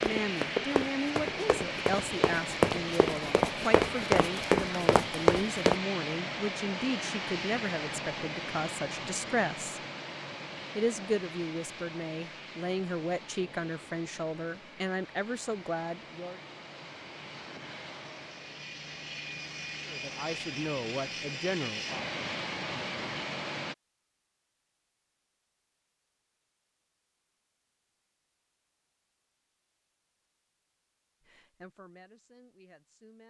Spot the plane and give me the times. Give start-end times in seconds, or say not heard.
0.0-23.8.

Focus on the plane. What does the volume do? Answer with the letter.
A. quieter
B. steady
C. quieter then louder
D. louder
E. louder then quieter
C.